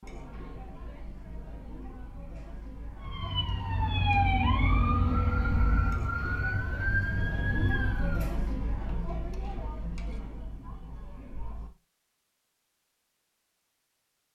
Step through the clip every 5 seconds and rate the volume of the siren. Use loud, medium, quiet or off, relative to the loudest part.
loud, loud, off.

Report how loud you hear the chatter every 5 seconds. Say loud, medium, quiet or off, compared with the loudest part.
medium, loud, medium.